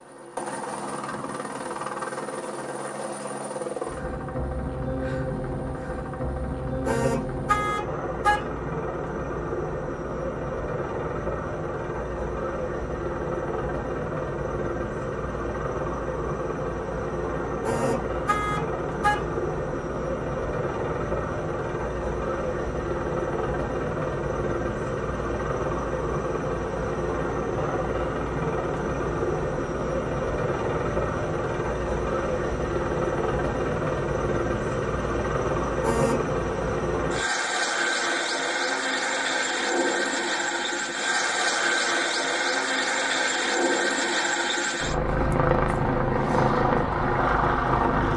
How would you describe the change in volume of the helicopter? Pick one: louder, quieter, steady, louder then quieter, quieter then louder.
louder.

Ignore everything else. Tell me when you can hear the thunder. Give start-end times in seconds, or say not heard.
not heard.